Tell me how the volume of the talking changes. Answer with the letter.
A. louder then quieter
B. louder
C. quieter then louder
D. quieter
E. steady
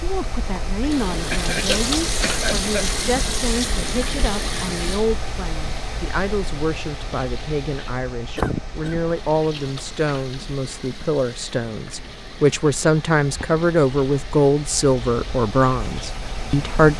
B.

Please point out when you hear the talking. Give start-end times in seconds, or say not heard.
0.0-16.9.